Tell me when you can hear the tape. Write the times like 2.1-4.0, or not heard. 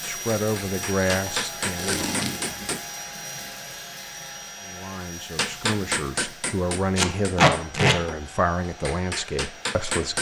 1.1-2.6, 7.0-8.0.